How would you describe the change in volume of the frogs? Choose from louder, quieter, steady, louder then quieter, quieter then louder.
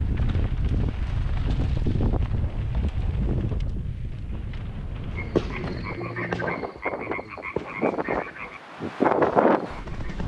quieter.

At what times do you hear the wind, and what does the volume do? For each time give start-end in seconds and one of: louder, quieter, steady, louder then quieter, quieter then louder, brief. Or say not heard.
0.0-10.2 quieter then louder.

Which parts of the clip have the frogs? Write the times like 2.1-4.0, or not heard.
5.1-10.2.